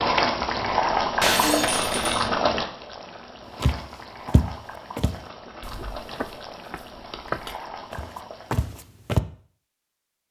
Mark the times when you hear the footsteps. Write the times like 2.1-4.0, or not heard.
3.6-9.2.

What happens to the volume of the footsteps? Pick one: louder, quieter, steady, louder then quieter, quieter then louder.
quieter then louder.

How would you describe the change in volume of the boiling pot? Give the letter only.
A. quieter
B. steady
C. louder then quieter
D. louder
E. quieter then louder
A.